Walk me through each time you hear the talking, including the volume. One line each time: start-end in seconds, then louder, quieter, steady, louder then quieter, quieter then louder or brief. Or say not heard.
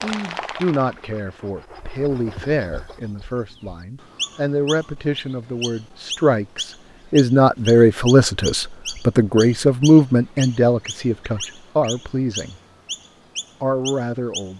0.0-12.6 louder
13.6-14.5 brief.